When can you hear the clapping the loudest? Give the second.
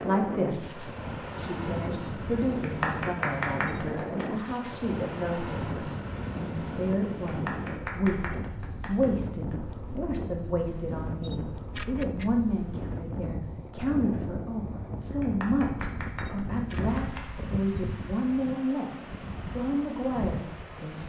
3 s.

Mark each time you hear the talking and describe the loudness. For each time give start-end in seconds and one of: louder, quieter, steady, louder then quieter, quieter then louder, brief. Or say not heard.
0.0-21.0 steady.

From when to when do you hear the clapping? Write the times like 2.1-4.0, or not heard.
2.6-4.2, 7.2-9.1, 15.2-17.2.